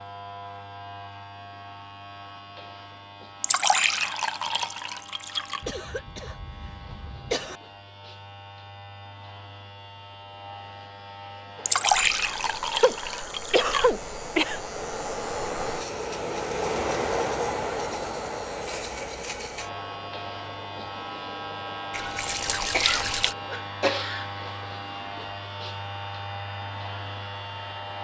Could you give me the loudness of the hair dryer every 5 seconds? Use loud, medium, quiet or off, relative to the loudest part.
off, off, medium, loud, quiet, quiet.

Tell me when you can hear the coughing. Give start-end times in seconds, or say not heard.
5.6-7.6, 12.8-14.6, 22.7-24.2.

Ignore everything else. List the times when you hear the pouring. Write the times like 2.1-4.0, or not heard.
3.4-5.7, 11.7-13.9, 21.9-23.4.